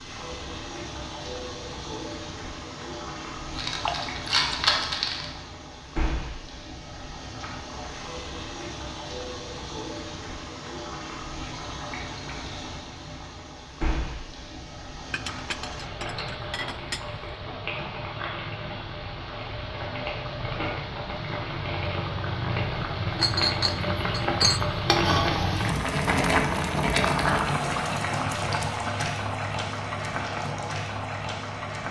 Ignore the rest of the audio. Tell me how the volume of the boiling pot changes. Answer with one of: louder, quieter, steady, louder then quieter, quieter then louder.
louder.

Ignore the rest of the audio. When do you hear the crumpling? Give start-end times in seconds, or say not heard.
3.5-5.2.